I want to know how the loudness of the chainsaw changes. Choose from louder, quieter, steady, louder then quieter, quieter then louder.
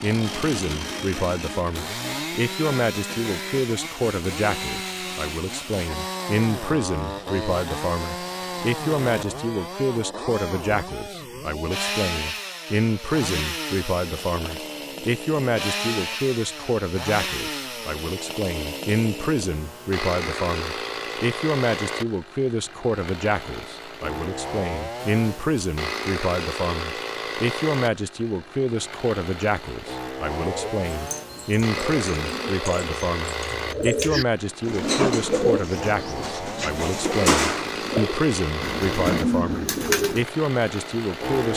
steady.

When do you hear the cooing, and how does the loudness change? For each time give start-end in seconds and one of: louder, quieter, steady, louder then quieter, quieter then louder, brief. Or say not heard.
30.4-40.3 louder.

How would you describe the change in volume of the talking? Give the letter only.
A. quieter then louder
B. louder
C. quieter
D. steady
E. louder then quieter
D.